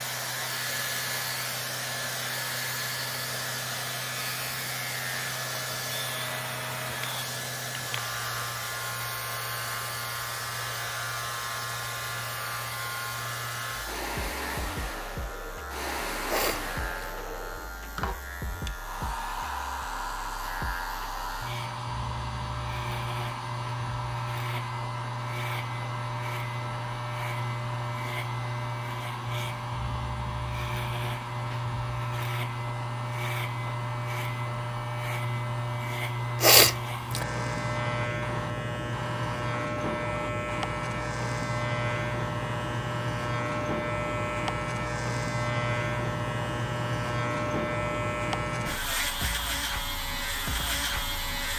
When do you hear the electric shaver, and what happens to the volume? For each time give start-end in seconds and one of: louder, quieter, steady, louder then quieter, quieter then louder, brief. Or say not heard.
0.0-51.5 louder.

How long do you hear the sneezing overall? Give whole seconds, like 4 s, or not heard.
2 s.